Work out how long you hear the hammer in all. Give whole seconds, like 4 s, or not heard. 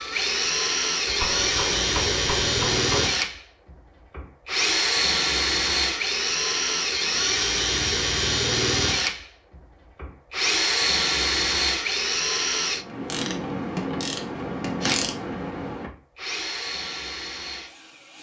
2 s.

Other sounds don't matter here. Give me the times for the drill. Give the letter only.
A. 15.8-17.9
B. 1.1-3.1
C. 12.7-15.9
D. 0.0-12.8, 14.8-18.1
D.